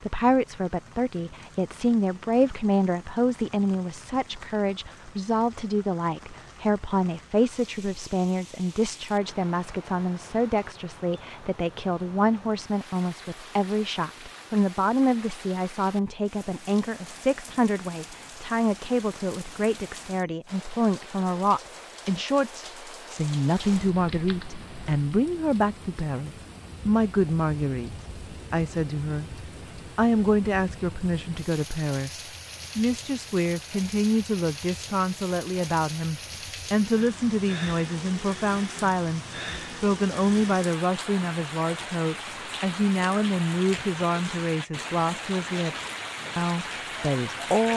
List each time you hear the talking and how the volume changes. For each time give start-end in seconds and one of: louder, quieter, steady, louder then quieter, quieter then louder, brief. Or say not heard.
0.0-29.3 steady
29.9-47.7 steady.